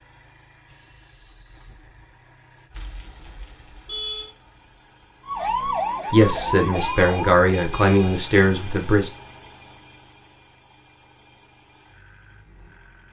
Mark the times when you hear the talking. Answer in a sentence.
You can hear the talking from 6.1 to 9.1 s.